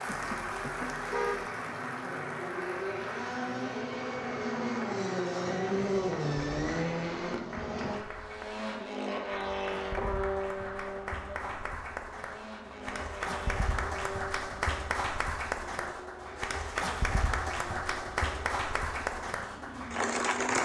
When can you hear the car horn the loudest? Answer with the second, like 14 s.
1 s.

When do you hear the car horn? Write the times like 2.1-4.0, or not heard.
0.1-1.4.